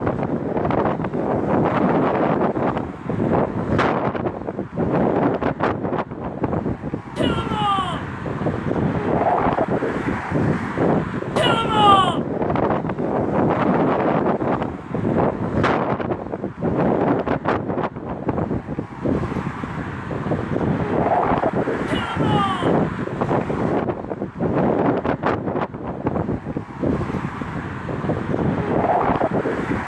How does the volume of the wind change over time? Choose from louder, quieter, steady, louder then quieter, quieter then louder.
steady.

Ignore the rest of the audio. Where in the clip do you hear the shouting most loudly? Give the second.
12 s.